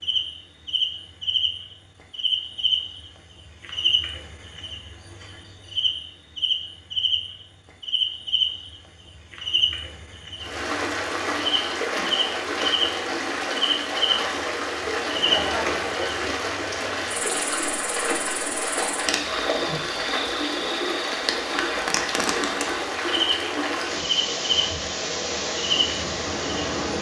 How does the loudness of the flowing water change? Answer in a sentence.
The loudness of the flowing water stays about the same.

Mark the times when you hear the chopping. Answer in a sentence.
The chopping can't be heard in this clip.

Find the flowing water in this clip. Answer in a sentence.
The flowing water can be heard from 10.3 to 26.9 s.